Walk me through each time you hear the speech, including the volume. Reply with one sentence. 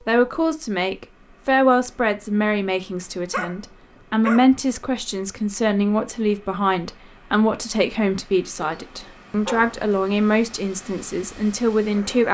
You can hear the speech from 0.1 to 12.2 s, at a steady volume.